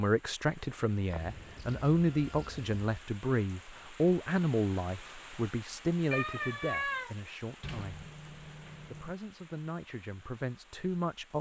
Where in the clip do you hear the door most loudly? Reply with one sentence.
The loudest moment of the door is at 8 seconds.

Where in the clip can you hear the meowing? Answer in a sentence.
The meowing can be heard from 1.1 to 2.8 s and from 6.1 to 7.2 s.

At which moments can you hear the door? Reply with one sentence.
The door can be heard from 7.6 to 9.2 s.